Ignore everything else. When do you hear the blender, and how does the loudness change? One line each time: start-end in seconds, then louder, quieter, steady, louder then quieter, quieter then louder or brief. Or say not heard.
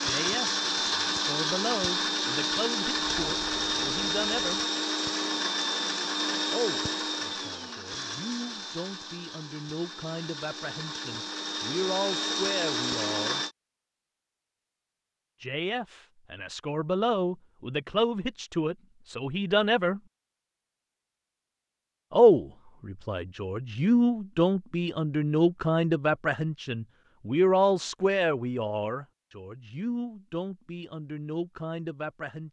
0.0-13.5 quieter then louder.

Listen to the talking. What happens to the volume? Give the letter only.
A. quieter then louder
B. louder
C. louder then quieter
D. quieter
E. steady
C.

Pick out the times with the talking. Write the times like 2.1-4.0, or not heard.
0.0-4.6, 6.5-13.4, 15.4-20.0, 22.1-32.4.